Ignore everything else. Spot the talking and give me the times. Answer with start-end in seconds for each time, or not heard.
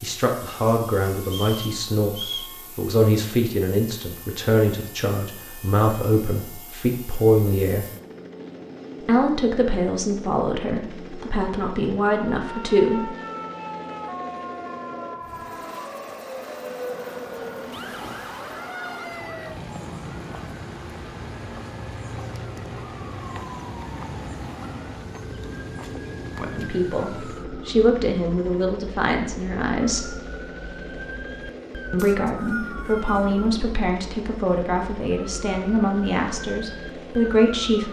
0.0-7.8, 9.1-13.2, 26.4-30.1, 31.9-37.8.